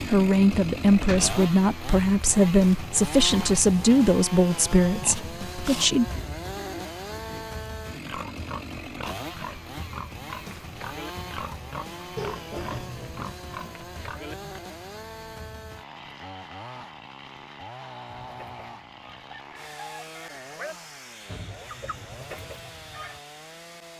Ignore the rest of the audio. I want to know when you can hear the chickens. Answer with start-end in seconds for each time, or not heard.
18.1-20.8, 21.5-23.1.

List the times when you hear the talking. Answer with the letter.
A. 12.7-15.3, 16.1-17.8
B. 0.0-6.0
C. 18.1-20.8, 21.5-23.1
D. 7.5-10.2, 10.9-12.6
B.